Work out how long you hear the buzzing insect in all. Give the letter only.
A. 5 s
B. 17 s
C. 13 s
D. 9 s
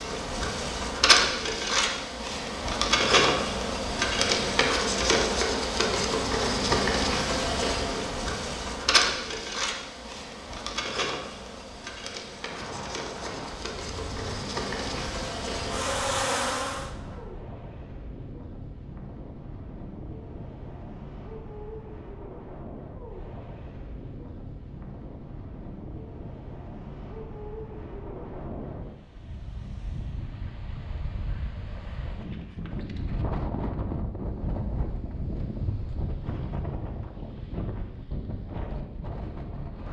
B.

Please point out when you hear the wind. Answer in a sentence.
The wind can be heard from 12.3 to 39.8 s.